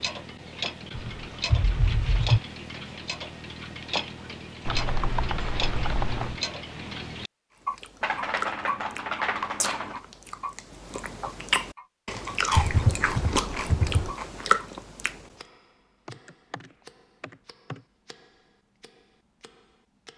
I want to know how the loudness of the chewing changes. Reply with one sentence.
The loudness of the chewing goes up.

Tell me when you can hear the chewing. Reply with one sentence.
The chewing can be heard from 7.6 to 15.2 s.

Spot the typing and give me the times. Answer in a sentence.
The typing can be heard from 0.9 to 2.4 s, from 4.7 to 6.3 s, from 8.0 to 10.0 s, from 12.5 to 14.2 s and from 16.1 to 17.8 s.